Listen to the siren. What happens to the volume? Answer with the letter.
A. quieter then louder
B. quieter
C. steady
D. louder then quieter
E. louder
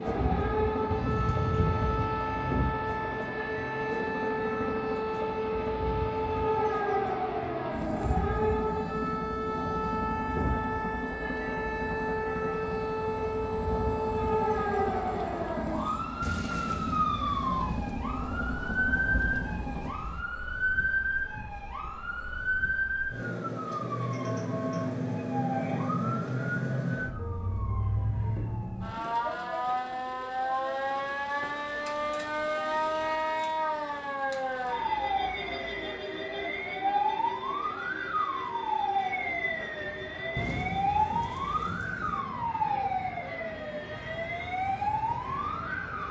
C.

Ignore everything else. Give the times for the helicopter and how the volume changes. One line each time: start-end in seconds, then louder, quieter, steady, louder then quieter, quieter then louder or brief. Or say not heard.
0.0-19.9 steady.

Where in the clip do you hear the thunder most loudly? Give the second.
2 s.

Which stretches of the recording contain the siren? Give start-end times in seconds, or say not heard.
0.0-46.0.